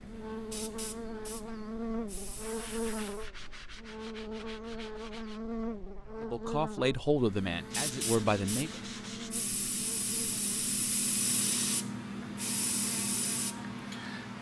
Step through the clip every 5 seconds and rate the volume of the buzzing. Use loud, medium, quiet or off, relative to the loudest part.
loud, loud, medium.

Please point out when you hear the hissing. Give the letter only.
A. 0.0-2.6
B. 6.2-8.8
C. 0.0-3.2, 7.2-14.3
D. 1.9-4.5
C.